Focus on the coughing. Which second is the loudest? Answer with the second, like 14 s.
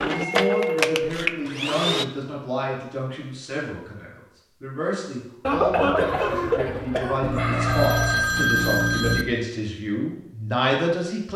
6 s.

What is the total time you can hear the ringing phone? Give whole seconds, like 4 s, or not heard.
3 s.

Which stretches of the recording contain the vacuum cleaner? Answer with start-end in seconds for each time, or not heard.
0.0-2.0.